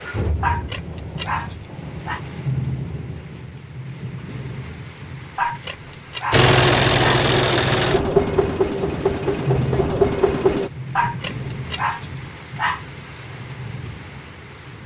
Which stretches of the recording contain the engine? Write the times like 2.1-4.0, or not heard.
6.3-10.7.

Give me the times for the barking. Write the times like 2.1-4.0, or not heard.
0.4-2.2, 5.3-7.2, 10.9-12.8.